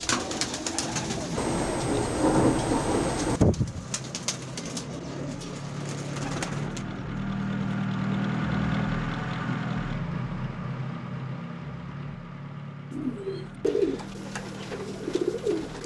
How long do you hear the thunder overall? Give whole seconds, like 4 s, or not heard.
2 s.